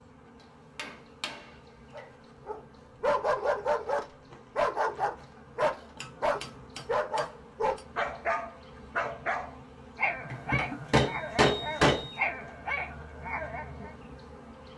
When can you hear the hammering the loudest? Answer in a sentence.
The volume of the hammering peaks at 12 seconds.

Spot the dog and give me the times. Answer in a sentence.
You can hear the dog from 1.9 to 13.9 s.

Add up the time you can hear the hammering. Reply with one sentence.
The hammering can be heard for 5 seconds in total.